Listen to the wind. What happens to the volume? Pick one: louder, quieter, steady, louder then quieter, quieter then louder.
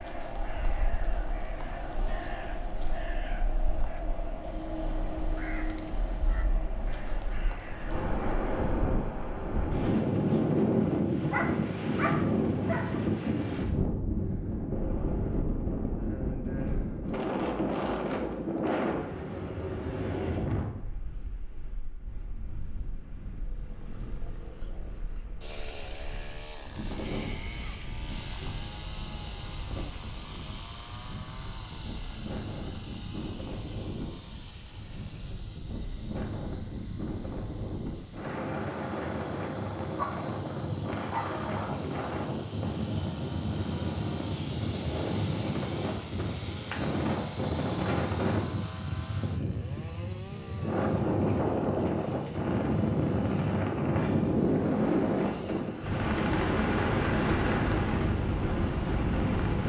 quieter then louder.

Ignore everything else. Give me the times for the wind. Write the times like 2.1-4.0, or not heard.
0.0-59.6.